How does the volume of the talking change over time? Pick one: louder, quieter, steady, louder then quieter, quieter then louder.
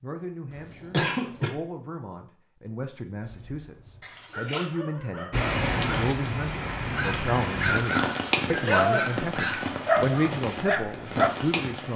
louder.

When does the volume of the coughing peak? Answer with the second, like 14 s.
1 s.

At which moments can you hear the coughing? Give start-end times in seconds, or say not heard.
0.5-1.5, 4.0-4.7, 8.4-9.1.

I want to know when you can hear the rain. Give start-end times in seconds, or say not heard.
5.3-11.9.